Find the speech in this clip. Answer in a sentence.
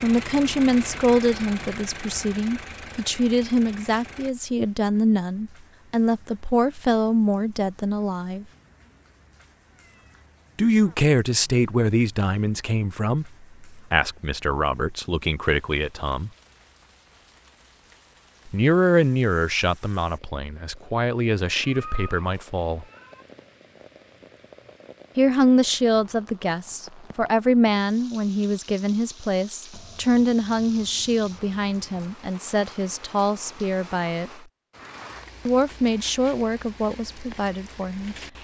The speech can be heard from 0.0 to 8.4 s, from 10.6 to 16.3 s, from 18.4 to 22.9 s, from 25.1 to 34.3 s and from 35.5 to 38.1 s.